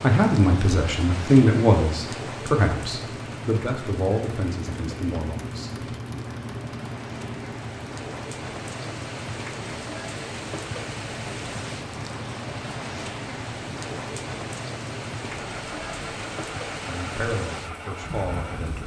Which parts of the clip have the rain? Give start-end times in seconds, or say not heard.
0.0-18.8.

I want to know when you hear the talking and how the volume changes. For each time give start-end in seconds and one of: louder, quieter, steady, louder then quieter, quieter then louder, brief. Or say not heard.
0.0-6.3 quieter
16.8-18.8 brief.